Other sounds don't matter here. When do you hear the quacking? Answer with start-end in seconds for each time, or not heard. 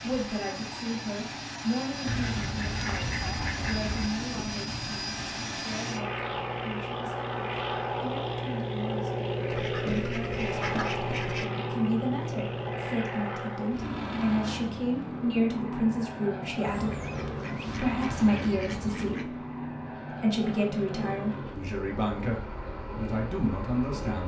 2.0-4.1, 9.5-11.4, 16.6-19.2.